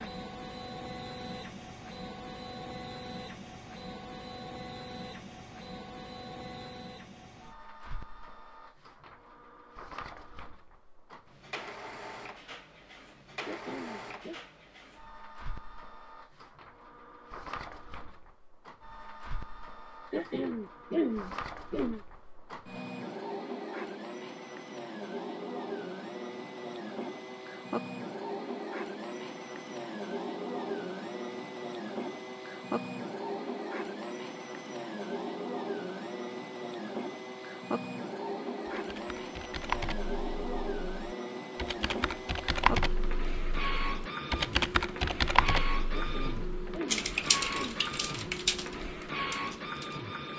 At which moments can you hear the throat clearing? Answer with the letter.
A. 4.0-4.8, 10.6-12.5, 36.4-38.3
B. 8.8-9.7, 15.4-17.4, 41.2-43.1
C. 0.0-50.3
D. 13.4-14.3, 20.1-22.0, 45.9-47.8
D.